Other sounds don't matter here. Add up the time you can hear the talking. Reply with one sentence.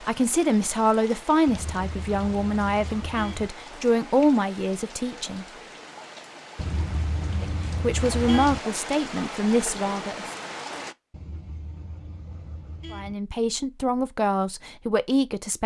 The talking can be heard for 11 seconds in total.